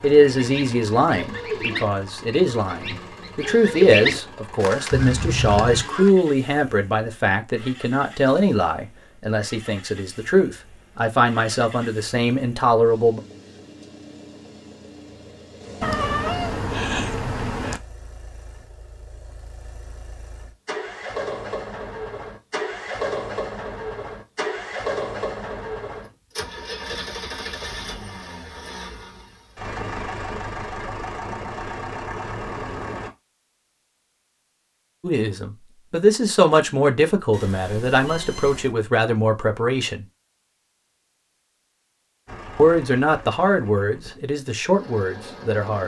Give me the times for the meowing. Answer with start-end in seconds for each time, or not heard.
4.9-5.9, 15.8-17.8, 37.3-38.8.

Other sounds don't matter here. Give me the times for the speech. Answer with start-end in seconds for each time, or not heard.
0.0-13.2, 35.0-40.0, 42.5-45.8.